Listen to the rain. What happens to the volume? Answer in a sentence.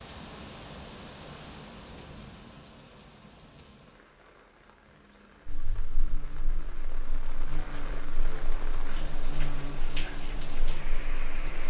The loudness of the rain goes down, then up.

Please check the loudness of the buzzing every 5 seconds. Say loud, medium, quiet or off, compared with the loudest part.
off, loud, loud.